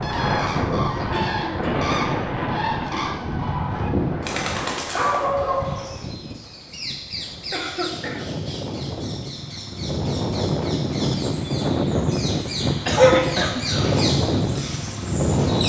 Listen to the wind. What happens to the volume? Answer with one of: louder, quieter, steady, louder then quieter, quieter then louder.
quieter then louder.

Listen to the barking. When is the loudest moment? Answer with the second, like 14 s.
13 s.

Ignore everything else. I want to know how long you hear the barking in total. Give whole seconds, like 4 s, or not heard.
4 s.